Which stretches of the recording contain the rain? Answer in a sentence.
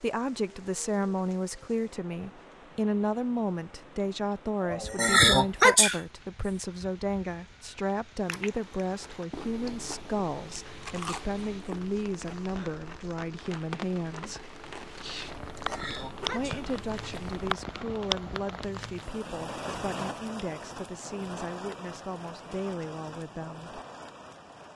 You can hear the rain from 0.0 to 24.7 s.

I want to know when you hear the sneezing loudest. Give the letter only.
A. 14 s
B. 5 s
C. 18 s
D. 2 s
B.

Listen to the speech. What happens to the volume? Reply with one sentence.
The volume of the speech goes down.